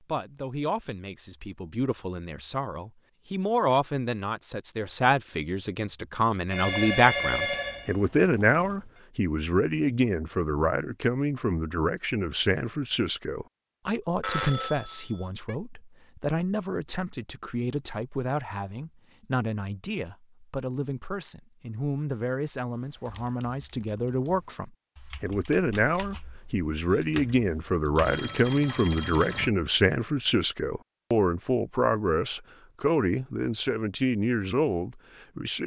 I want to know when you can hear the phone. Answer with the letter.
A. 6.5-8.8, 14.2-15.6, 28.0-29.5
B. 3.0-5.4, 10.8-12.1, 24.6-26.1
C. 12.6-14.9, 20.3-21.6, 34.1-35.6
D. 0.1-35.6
A.